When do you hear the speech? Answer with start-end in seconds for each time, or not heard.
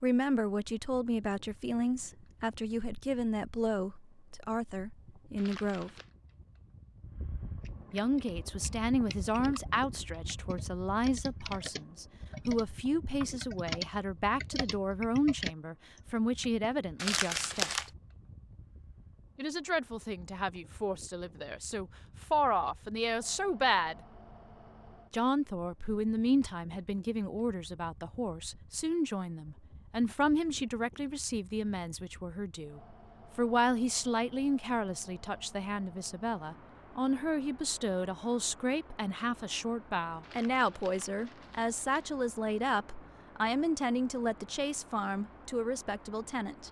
0.0-5.9, 7.9-17.9, 19.4-23.9, 25.1-46.6.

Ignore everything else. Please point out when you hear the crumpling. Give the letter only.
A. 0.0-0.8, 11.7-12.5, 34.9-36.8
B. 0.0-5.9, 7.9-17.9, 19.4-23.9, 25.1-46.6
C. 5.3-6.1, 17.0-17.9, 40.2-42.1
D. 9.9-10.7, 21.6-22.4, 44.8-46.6
C.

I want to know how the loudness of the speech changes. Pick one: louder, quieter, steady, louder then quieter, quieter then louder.
steady.